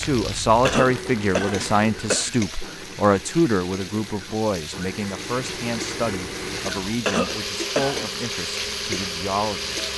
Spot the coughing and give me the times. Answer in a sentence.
You can hear the coughing from 0.7 to 2.4 s and from 7.0 to 8.1 s.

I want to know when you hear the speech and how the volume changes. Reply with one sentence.
The speech can be heard from 0.0 to 9.8 s, getting quieter.